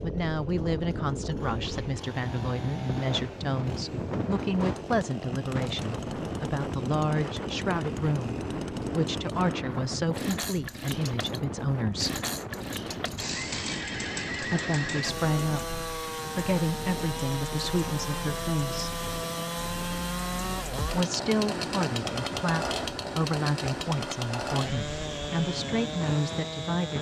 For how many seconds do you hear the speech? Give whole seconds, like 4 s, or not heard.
23 s.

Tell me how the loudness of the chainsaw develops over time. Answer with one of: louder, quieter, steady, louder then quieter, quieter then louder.
louder.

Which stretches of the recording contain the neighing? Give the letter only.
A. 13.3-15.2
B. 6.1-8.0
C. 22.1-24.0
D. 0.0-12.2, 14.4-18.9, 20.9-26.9
A.